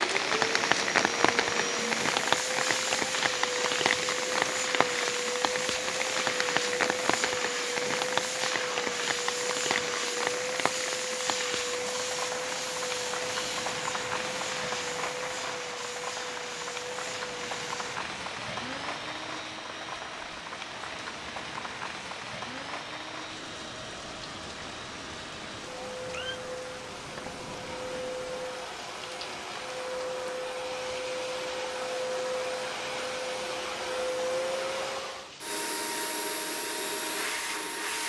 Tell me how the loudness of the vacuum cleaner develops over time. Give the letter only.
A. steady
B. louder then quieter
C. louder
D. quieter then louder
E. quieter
D.